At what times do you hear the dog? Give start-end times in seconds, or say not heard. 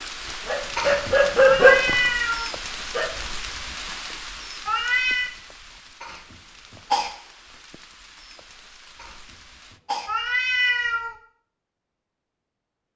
0.0-3.1.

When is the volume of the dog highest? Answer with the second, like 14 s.
2 s.